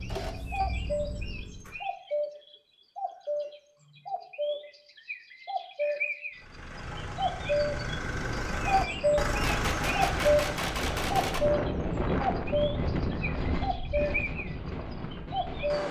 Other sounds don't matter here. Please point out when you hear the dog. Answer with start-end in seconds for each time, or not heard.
not heard.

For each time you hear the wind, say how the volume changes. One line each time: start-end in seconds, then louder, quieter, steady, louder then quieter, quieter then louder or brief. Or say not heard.
7.3-15.8 louder then quieter.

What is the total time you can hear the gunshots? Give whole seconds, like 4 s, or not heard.
2 s.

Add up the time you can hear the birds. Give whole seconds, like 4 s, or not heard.
14 s.